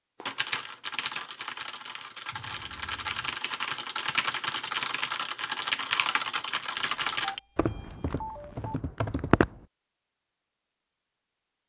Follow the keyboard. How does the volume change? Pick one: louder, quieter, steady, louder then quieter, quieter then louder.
louder then quieter.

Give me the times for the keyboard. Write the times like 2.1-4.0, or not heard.
0.2-9.7.